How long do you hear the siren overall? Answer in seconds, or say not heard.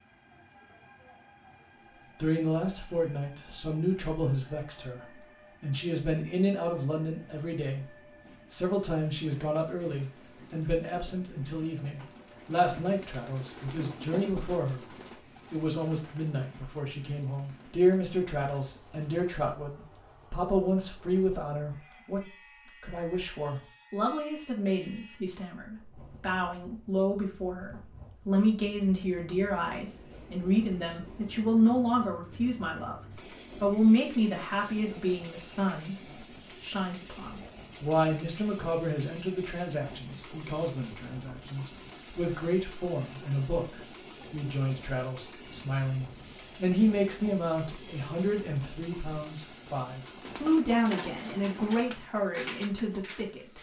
not heard.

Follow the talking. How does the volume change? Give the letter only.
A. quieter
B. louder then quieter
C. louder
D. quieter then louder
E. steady
E.